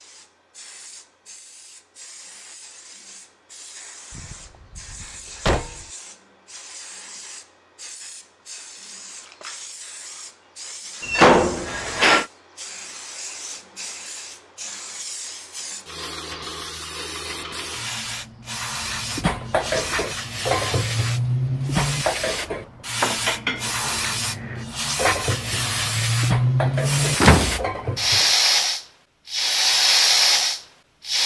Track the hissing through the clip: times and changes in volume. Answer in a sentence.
The hissing can be heard from 0.0 to 31.2 s, getting louder.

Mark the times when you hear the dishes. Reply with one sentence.
The dishes can be heard from 18.9 to 28.2 s.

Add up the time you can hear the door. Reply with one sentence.
The door can be heard for 4 seconds in total.